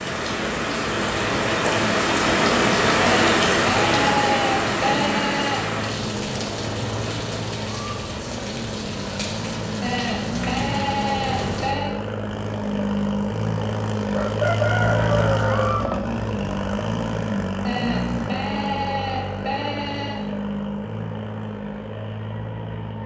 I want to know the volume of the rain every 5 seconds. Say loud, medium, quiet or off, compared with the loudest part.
loud, medium, medium, off, off.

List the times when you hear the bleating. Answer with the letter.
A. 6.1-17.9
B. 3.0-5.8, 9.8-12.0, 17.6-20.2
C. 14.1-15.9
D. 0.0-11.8
B.